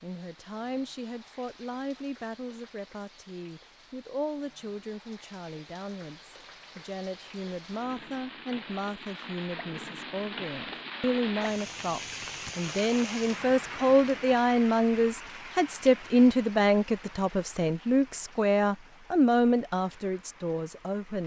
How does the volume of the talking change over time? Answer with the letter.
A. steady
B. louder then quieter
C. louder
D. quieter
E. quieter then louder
C.